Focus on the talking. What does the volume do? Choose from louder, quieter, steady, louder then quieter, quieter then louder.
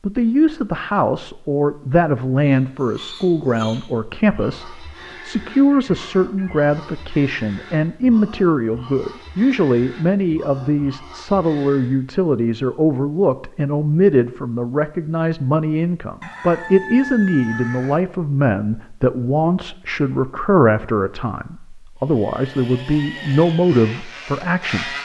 steady.